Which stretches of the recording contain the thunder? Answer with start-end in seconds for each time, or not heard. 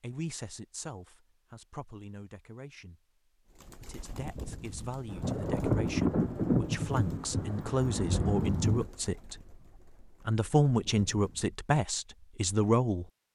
5.0-8.9.